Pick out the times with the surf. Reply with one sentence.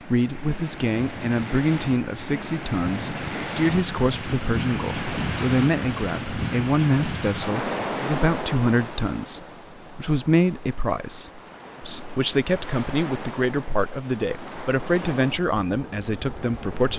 You can hear the surf from 0.0 to 16.9 s.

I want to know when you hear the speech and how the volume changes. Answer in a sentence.
You can hear the speech from 0.1 to 16.9 s, at a steady volume.